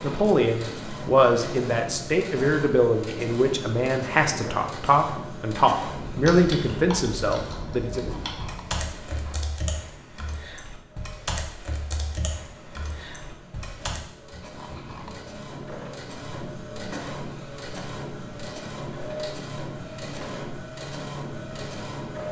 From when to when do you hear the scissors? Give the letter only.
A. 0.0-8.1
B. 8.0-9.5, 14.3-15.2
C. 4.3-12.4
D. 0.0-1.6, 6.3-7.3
B.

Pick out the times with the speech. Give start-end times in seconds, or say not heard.
0.0-8.1.